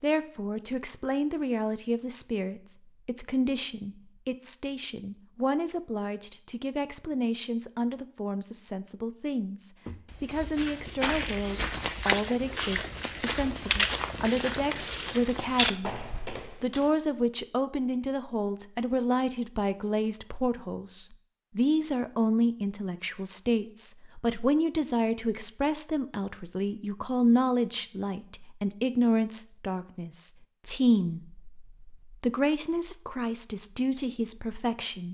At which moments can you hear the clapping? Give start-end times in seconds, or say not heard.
not heard.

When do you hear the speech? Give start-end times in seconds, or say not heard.
0.0-35.0.